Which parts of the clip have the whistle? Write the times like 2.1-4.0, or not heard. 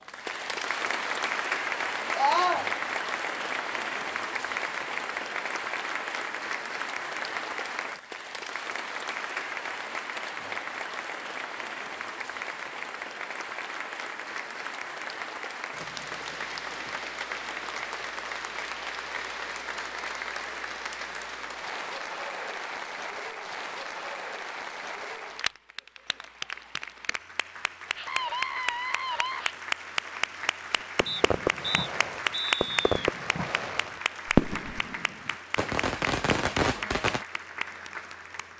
31.1-33.0.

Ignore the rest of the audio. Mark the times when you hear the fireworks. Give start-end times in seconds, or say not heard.
31.0-37.2.